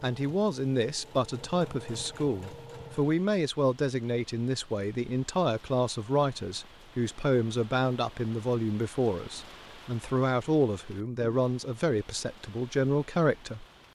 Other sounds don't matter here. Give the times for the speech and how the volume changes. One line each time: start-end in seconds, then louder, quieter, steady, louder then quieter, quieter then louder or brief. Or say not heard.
0.0-13.7 steady.